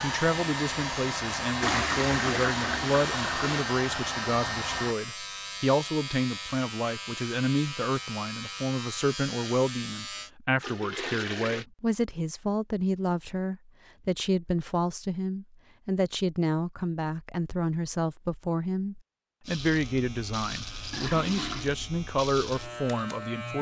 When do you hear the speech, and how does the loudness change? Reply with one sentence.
You can hear the speech from 0.0 to 23.5 s, at a steady volume.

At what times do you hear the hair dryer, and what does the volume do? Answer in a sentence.
You can hear the hair dryer from 0.0 to 5.0 s, at a steady volume.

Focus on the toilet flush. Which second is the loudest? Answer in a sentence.
The loudest moment of the toilet flush is at 2 seconds.